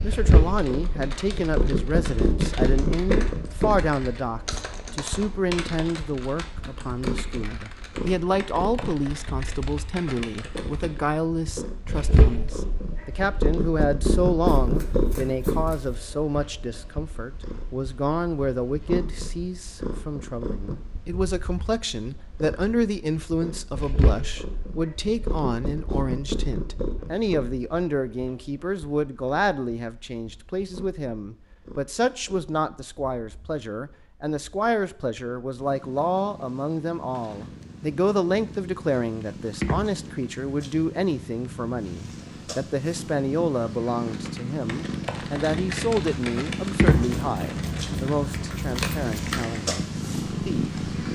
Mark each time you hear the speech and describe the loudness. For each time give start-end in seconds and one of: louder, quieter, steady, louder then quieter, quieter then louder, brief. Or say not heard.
0.0-50.7 steady.